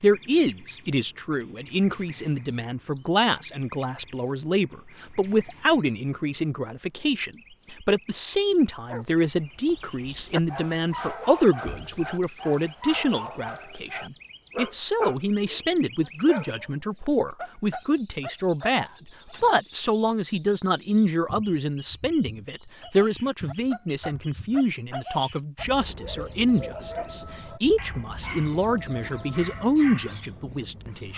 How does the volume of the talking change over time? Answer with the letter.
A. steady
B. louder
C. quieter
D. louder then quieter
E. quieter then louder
A.